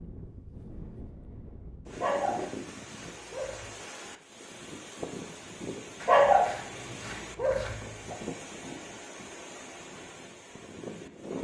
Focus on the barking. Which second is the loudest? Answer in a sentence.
The loudest moment of the barking is at 6 seconds.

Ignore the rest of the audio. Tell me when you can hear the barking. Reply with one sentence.
The barking can be heard from 1.9 to 3.7 s and from 6.0 to 8.2 s.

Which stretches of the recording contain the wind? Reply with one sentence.
You can hear the wind from 0.0 to 11.4 s.